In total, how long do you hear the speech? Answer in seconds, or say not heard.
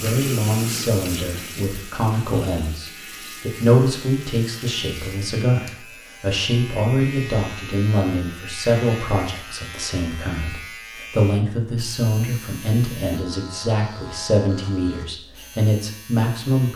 17 s.